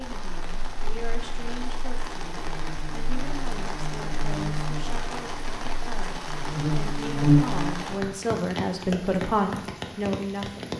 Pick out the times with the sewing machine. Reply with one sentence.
The sewing machine can't be heard in this clip.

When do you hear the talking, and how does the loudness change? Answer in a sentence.
You can hear the talking from 0.0 to 10.7 s, getting louder.